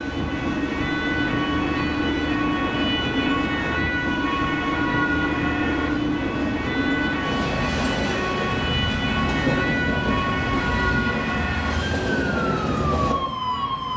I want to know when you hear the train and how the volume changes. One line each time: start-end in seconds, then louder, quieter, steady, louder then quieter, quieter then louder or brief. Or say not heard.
0.0-13.9 steady.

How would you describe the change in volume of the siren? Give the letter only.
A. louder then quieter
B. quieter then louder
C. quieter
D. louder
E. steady
E.